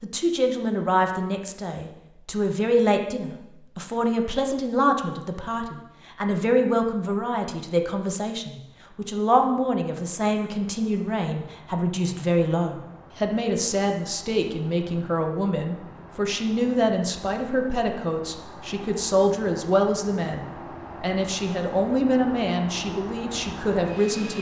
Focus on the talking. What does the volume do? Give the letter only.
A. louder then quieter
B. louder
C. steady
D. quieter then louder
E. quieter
C.